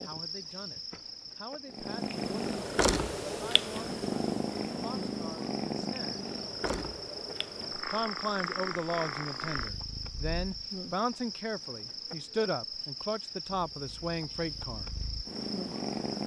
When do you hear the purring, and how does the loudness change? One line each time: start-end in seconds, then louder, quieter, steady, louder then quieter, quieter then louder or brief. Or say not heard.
1.7-10.7 quieter
13.5-16.2 brief.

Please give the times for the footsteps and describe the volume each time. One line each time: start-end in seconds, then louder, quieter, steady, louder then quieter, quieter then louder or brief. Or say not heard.
not heard.